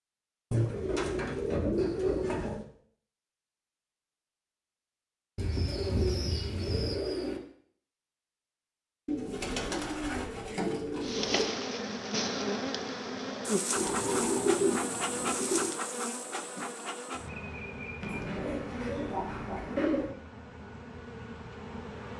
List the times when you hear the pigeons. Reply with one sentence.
The pigeons can be heard from 0.5 to 2.6 s, from 5.3 to 7.4 s, from 9.1 to 11.5 s, from 13.8 to 15.7 s and from 18.0 to 20.1 s.